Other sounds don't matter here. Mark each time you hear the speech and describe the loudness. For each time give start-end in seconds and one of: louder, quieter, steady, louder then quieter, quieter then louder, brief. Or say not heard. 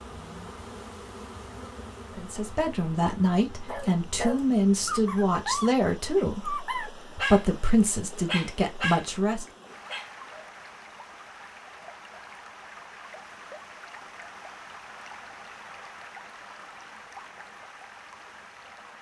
2.1-9.4 steady.